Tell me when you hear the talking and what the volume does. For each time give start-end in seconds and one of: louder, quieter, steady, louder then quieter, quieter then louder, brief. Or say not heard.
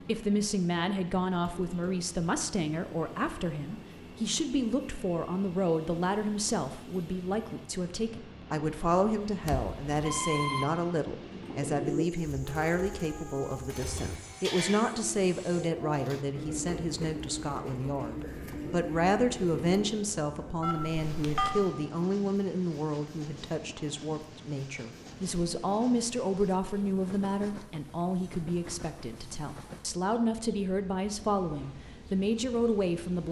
0.1-33.2 steady.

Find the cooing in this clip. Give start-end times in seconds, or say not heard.
11.2-20.1.